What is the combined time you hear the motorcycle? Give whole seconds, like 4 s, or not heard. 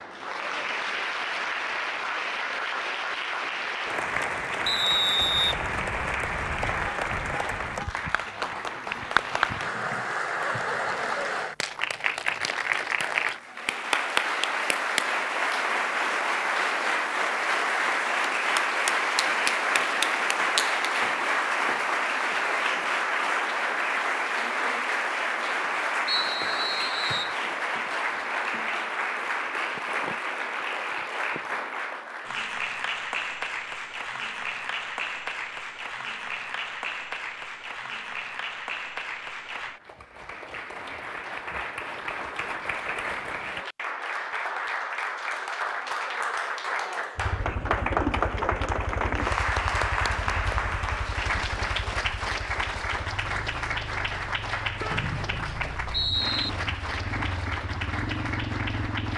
12 s.